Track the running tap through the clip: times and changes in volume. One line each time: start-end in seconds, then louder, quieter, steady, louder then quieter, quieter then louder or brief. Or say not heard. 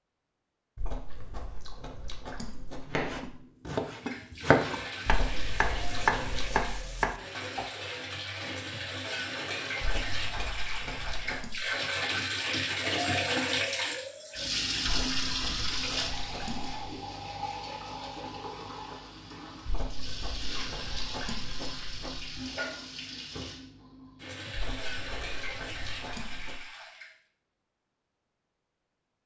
3.8-27.1 louder then quieter.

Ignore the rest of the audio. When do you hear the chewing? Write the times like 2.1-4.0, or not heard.
0.8-3.3, 5.0-6.8, 9.8-11.6, 14.8-16.8, 19.6-22.4, 24.5-26.6.